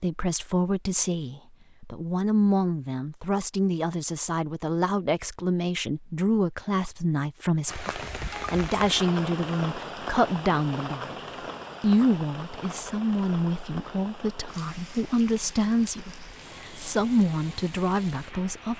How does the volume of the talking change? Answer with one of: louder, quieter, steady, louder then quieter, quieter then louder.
steady.